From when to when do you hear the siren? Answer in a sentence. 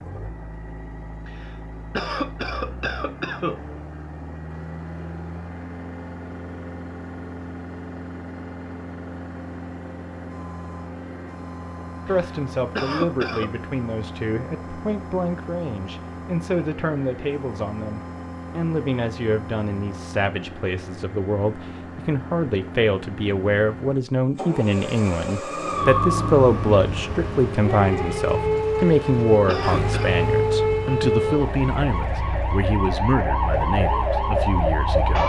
The siren can be heard from 25.4 to 35.2 s.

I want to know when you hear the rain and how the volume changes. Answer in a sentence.
The rain can't be heard in this clip.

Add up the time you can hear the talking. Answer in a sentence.
The talking can be heard for 23 seconds in total.